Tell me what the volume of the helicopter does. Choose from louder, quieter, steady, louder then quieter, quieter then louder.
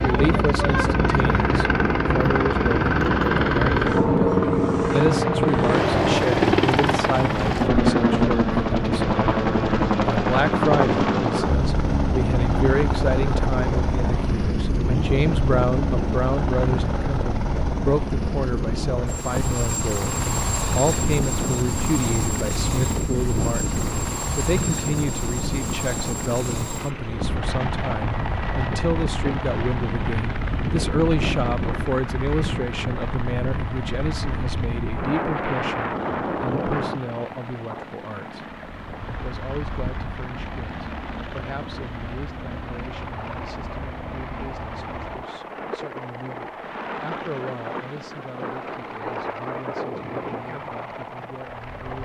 quieter.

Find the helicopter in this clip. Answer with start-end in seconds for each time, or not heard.
0.0-52.0.